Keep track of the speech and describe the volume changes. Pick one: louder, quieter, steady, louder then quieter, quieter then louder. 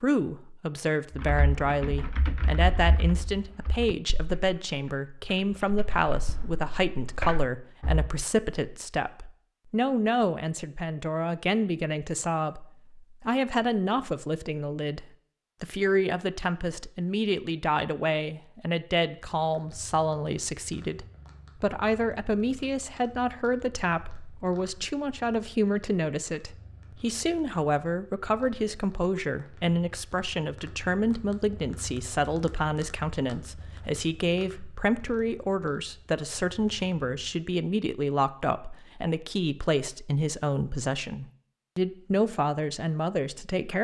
steady.